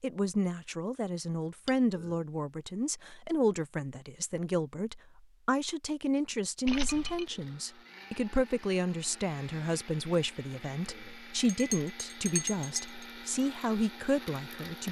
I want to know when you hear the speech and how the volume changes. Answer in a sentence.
The speech can be heard from 0.0 to 14.8 s, at a steady volume.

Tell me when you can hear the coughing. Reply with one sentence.
You can't hear the coughing here.